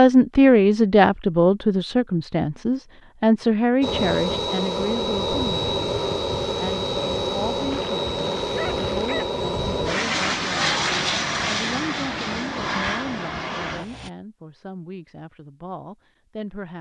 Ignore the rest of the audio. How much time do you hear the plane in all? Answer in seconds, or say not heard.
10 s.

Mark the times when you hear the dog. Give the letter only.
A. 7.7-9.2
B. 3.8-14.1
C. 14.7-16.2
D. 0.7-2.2
A.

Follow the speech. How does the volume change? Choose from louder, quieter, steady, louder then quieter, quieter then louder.
quieter.